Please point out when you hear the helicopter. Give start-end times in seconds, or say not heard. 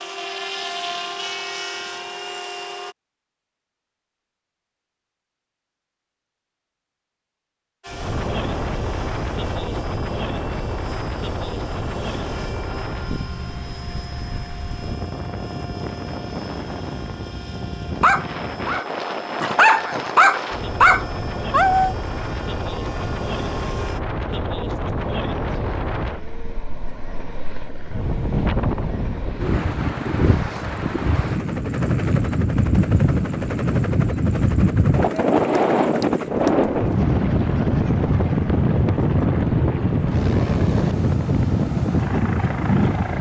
0.0-3.0, 7.8-43.1.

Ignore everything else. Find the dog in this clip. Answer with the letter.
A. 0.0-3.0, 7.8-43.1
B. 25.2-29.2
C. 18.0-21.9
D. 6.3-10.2
C.